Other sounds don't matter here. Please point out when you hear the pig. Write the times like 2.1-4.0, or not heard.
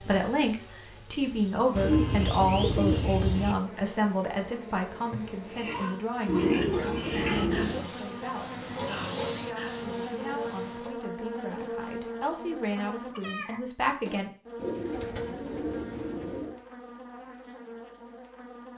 5.5-10.9.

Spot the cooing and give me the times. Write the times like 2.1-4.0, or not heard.
1.8-3.5, 6.2-7.8, 14.6-16.6.